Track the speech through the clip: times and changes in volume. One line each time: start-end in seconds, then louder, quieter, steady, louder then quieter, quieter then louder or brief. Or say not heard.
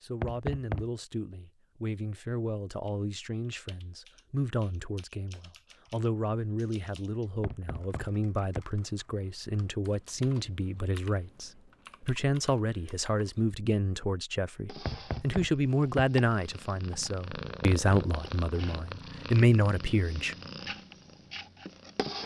0.0-20.4 louder.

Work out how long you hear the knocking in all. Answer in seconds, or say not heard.
3 s.